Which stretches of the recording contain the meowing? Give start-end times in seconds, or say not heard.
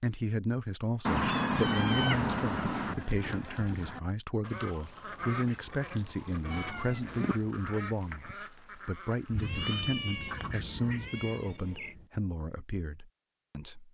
1.1-3.0, 6.5-7.3, 9.4-11.9.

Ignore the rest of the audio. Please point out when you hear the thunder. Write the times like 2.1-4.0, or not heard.
9.2-12.1.